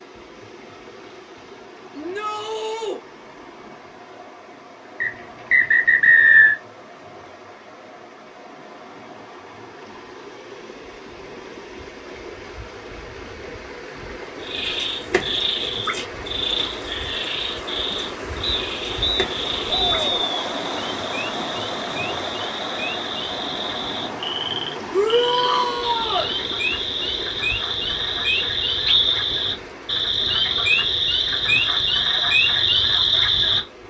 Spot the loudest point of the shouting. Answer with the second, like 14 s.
25 s.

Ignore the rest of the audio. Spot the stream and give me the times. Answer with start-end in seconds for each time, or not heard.
0.0-33.8.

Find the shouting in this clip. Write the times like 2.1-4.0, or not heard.
1.9-3.0, 19.6-20.2, 24.9-26.3.